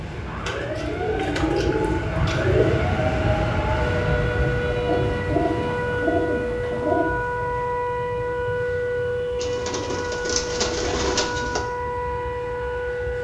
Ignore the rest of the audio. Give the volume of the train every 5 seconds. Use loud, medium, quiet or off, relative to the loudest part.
loud, medium, quiet.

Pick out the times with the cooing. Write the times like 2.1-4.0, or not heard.
0.5-2.9, 4.8-7.2, 9.3-11.7.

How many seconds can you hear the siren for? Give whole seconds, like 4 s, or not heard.
13 s.